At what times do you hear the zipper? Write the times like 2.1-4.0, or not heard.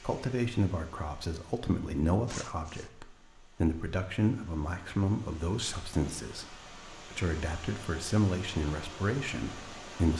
2.2-2.9.